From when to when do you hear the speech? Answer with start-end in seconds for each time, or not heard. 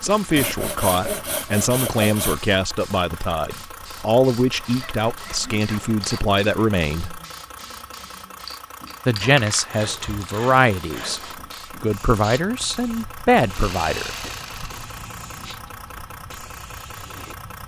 0.0-7.2, 9.1-14.1.